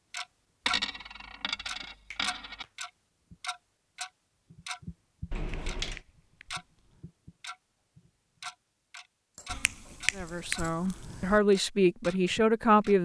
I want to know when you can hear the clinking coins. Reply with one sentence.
You can hear the clinking coins from 0.7 to 2.6 s, from 5.3 to 6.0 s and from 9.3 to 10.8 s.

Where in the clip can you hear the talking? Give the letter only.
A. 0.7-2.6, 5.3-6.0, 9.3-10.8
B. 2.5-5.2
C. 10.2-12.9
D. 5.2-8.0
C.